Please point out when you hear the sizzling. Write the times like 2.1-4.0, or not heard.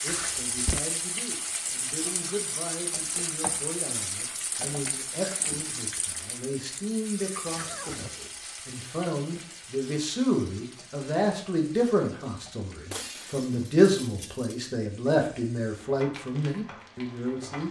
0.0-17.6.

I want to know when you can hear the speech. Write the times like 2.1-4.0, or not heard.
0.0-17.6.